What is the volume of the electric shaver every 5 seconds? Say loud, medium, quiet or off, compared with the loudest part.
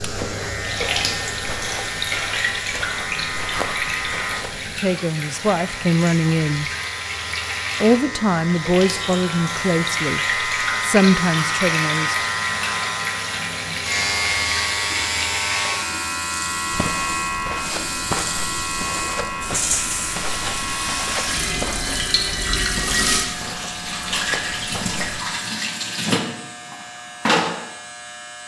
medium, medium, loud, loud, medium, quiet.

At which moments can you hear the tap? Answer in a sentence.
You can hear the tap from 0.0 to 27.6 s.